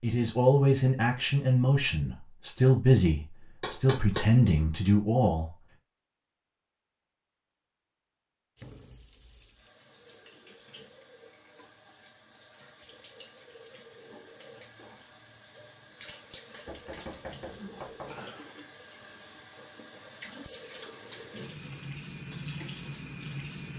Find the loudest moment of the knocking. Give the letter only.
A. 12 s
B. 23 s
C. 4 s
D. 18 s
C.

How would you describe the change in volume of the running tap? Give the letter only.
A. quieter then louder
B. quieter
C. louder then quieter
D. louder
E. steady
D.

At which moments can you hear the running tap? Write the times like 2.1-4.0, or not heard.
8.6-23.7.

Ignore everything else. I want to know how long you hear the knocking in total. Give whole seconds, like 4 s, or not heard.
2 s.